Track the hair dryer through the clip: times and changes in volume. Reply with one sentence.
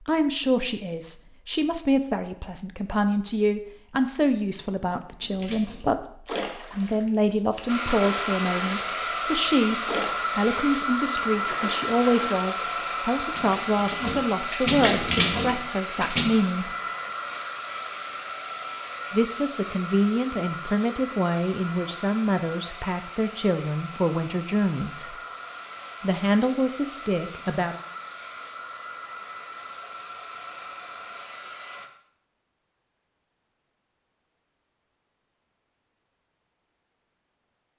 The hair dryer can be heard from 7.7 to 31.9 s, getting quieter.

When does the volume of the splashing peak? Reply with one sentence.
The loudest moment of the splashing is at 15 seconds.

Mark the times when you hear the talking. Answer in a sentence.
You can hear the talking from 0.1 to 16.7 s, from 19.1 to 25.1 s and from 26.0 to 27.8 s.